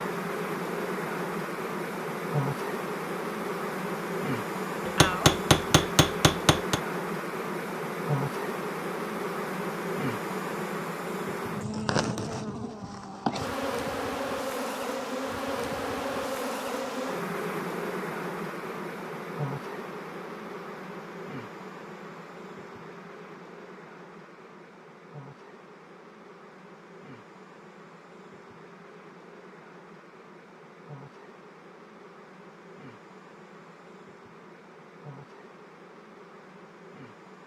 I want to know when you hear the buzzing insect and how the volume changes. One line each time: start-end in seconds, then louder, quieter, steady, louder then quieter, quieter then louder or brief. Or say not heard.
0.0-37.4 quieter.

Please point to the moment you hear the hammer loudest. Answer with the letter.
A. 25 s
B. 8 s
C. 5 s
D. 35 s
C.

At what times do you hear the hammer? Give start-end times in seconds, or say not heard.
4.8-6.8.